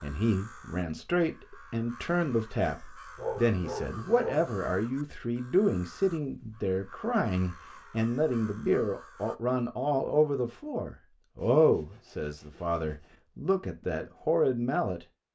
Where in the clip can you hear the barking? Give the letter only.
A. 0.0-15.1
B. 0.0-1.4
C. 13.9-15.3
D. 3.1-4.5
D.